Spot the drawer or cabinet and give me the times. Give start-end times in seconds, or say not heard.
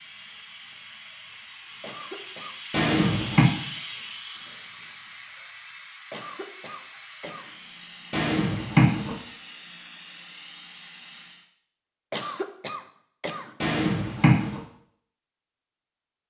2.7-3.5, 8.1-9.2, 13.6-14.6.